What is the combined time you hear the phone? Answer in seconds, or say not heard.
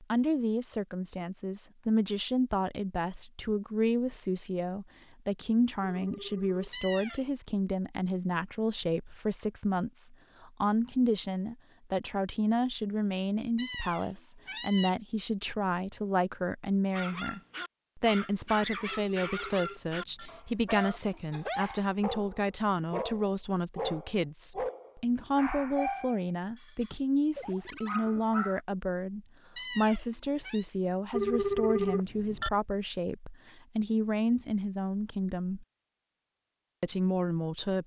4 s.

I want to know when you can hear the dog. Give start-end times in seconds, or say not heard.
16.9-28.6.